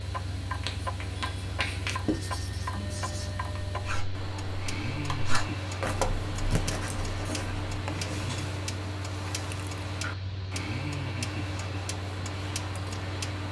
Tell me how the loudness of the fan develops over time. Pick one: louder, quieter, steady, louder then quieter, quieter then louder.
steady.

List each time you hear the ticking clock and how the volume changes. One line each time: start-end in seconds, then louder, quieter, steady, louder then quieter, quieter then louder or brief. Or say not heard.
0.0-13.4 steady.